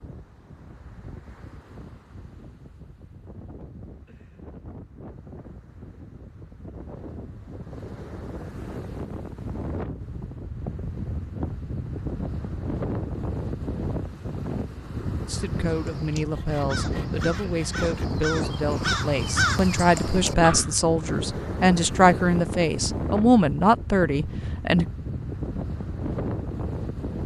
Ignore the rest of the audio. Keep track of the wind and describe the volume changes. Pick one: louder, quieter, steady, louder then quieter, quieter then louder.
louder.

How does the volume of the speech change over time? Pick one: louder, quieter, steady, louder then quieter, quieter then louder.
louder.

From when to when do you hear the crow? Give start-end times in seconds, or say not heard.
15.6-20.8.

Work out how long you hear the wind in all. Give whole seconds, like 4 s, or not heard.
27 s.